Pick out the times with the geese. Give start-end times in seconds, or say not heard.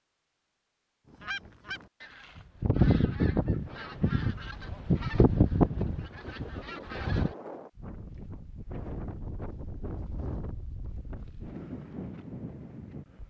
1.1-7.3.